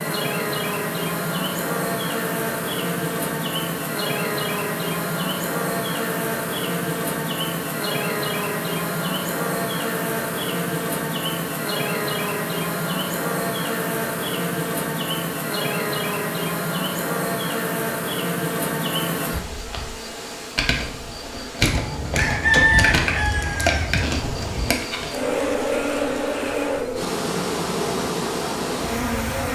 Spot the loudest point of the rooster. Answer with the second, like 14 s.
23 s.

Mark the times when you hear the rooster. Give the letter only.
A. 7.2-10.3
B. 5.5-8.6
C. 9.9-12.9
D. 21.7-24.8
D.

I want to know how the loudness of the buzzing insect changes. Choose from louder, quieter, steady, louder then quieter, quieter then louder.
steady.